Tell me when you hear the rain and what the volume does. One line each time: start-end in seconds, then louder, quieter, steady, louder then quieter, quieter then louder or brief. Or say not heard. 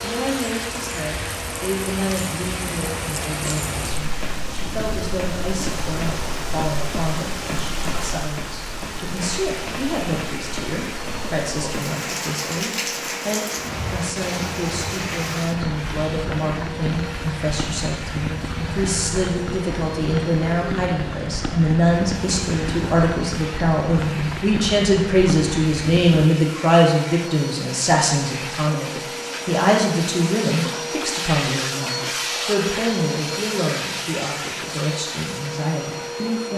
0.0-26.2 steady.